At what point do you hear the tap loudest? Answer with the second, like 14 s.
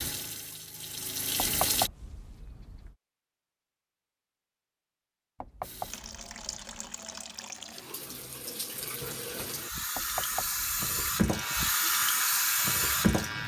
13 s.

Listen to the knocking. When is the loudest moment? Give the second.
2 s.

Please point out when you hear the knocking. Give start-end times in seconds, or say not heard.
1.4-3.0, 5.4-6.8, 9.9-10.9.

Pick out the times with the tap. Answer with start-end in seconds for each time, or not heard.
0.0-1.9, 5.6-13.4.